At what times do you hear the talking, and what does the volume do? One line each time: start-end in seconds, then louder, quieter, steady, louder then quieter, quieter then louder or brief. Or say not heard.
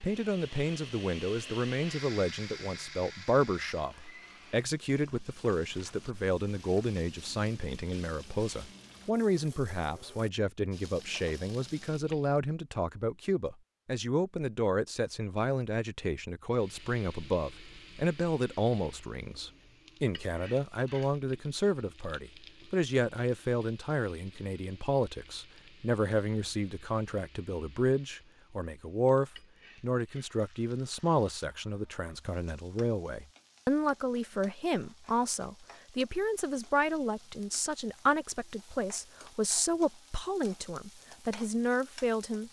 0.0-42.4 steady.